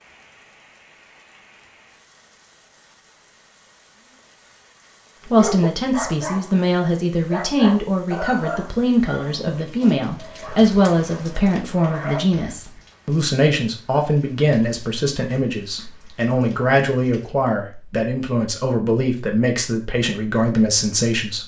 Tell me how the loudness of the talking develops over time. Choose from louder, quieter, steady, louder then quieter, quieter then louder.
steady.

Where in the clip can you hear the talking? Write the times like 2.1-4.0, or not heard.
5.2-21.4.